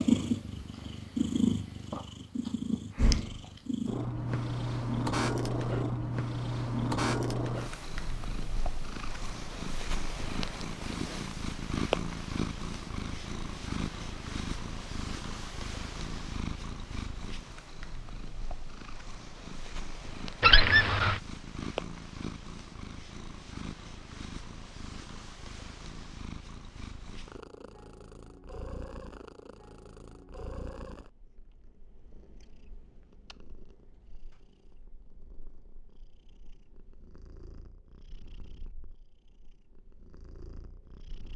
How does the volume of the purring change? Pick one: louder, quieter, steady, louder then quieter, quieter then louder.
quieter.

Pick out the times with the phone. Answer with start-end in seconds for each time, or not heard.
20.4-21.2.